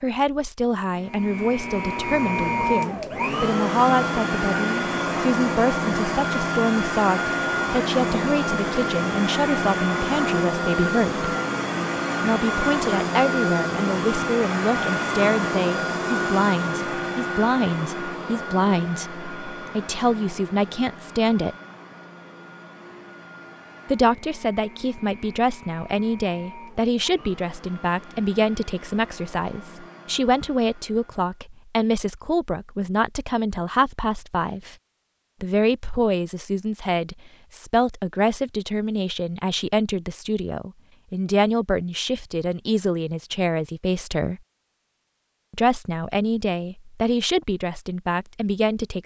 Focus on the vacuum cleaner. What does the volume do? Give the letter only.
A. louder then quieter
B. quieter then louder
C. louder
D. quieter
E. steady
D.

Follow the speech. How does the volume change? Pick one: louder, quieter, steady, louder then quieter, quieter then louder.
steady.